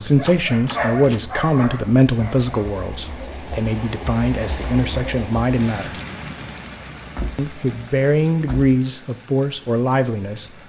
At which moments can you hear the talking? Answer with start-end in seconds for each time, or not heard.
0.0-6.0, 7.3-10.5.